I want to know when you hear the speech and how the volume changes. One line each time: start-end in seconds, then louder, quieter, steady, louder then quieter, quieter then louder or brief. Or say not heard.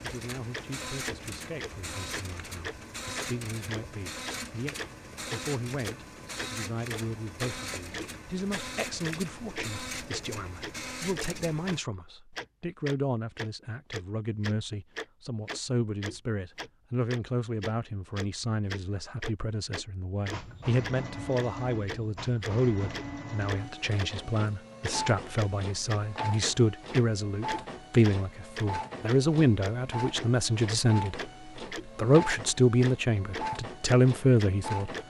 0.0-34.9 louder.